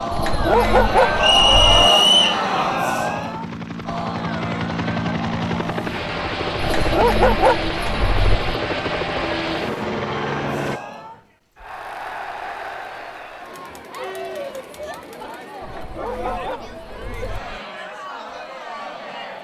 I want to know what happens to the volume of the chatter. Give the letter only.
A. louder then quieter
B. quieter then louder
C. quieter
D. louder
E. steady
C.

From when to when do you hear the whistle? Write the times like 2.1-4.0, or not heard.
1.1-2.5.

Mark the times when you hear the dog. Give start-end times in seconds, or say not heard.
0.1-1.8, 6.5-8.4, 15.6-17.6.